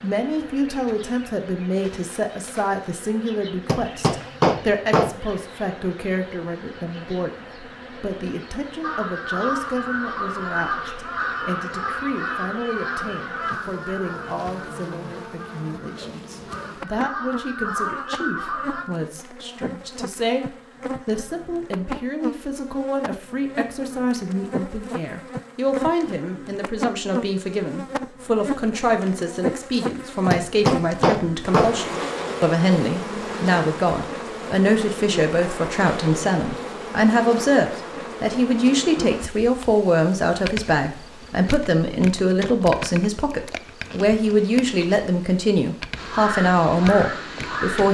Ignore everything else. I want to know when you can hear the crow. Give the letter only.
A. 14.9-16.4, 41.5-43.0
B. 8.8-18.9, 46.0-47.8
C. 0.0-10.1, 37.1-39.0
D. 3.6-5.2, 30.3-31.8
B.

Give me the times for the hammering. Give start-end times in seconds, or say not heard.
3.6-5.2, 30.3-31.8.